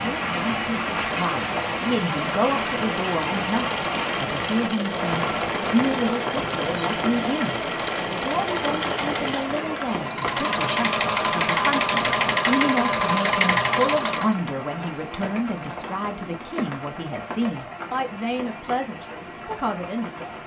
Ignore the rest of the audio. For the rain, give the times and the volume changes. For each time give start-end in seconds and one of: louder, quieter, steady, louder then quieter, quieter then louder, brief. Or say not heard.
0.0-20.4 quieter.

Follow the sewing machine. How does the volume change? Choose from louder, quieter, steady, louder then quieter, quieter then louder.
louder.